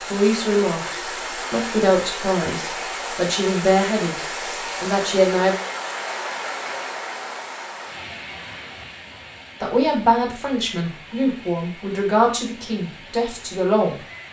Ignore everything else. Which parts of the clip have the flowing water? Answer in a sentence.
You can hear the flowing water from 0.0 to 14.2 s.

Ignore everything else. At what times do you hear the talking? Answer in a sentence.
You can hear the talking from 0.1 to 5.5 s and from 9.6 to 13.9 s.